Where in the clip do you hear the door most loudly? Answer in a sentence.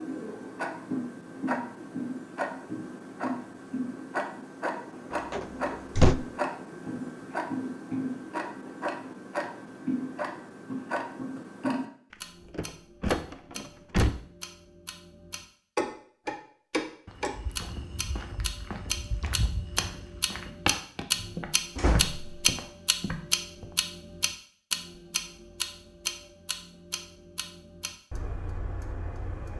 The volume of the door peaks at 6 seconds.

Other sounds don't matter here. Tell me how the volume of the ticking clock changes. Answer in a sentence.
The loudness of the ticking clock stays about the same.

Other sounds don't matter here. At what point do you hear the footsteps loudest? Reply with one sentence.
The loudest moment of the footsteps is at 21 seconds.